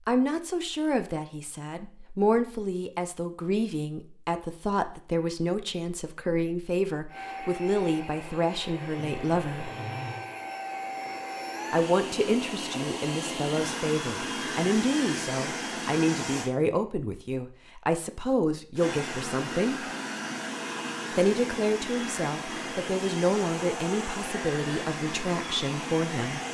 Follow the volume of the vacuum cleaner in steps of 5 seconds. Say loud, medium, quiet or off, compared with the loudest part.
off, medium, loud, loud, loud, loud.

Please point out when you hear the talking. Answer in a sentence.
The talking can be heard from 0.1 to 9.7 s, from 11.7 to 19.9 s and from 21.1 to 26.4 s.